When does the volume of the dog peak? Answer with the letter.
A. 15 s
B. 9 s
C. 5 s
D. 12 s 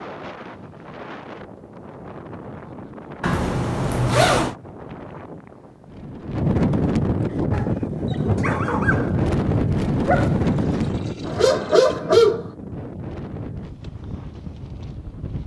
D.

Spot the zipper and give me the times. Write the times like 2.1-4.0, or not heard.
3.2-4.5.